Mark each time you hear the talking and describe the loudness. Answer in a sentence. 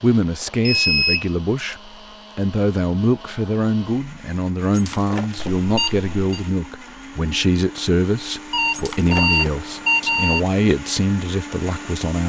You can hear the talking from 0.0 to 12.2 s, at a steady volume.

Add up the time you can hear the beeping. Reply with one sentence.
You can hear the beeping for 4 seconds altogether.